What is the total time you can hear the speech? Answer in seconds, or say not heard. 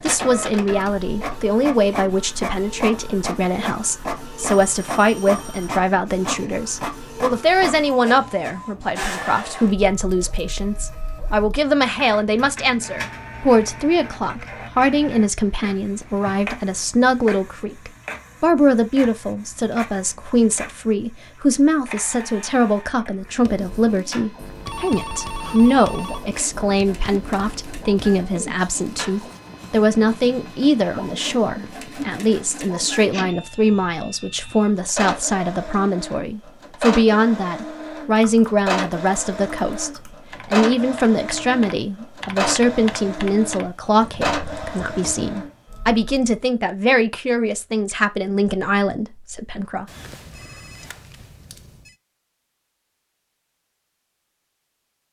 50 s.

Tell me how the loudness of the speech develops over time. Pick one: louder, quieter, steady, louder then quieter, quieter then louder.
steady.